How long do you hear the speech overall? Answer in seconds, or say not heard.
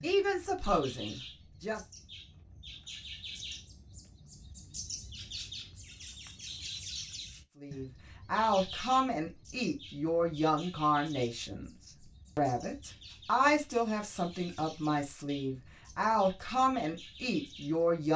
12 s.